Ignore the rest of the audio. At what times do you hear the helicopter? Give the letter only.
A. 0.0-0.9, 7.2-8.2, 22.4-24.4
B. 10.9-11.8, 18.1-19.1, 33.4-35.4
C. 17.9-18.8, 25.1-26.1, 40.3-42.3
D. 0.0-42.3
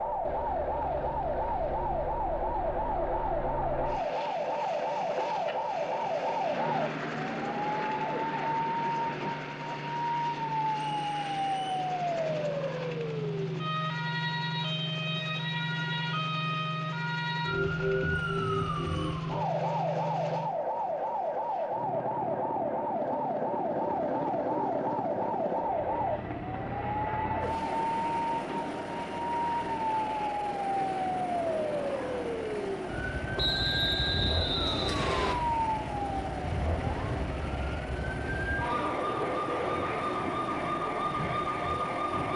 D.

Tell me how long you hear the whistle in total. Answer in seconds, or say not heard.
4 s.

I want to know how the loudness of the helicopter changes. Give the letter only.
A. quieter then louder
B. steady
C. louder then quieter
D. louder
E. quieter
B.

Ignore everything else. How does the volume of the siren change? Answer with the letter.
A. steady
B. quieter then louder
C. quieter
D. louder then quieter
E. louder
A.